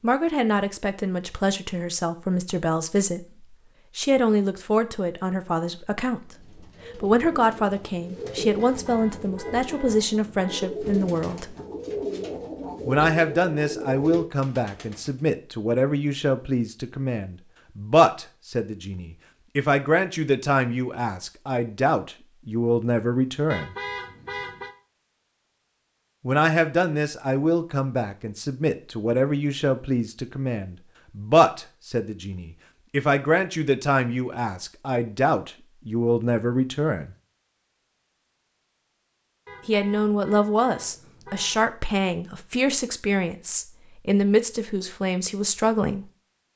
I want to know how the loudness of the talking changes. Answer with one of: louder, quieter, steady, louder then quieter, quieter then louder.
steady.